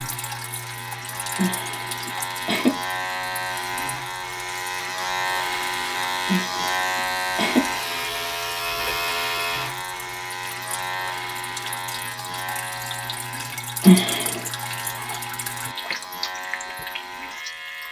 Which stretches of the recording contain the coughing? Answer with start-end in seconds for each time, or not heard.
1.4-2.8, 6.2-7.7, 13.8-14.5.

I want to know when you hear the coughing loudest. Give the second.
14 s.